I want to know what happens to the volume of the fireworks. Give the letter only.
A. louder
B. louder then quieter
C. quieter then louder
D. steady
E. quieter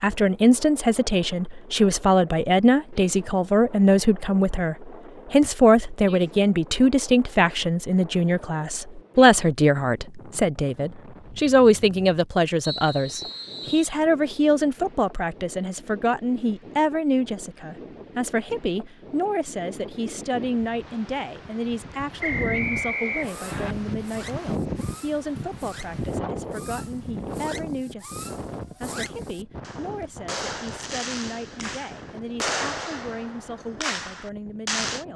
A.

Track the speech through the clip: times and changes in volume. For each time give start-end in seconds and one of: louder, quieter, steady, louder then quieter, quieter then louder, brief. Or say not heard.
0.0-35.1 quieter.